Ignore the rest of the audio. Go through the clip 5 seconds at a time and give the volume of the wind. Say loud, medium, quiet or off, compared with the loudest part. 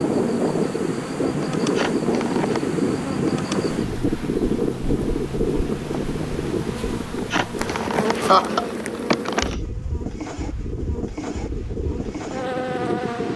loud, medium, medium.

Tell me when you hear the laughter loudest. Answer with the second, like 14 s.
8 s.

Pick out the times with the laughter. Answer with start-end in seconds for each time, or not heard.
1.6-2.8, 7.2-9.6.